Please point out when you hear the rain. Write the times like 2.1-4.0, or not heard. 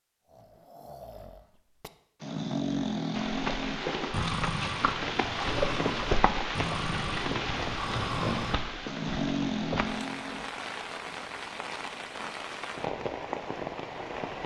3.1-14.4.